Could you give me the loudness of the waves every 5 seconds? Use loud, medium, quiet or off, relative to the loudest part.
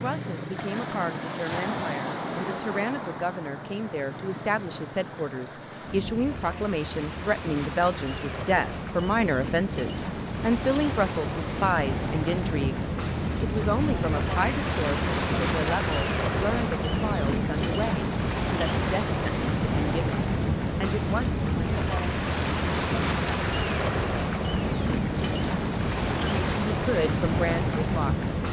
medium, medium, loud, loud, loud, loud.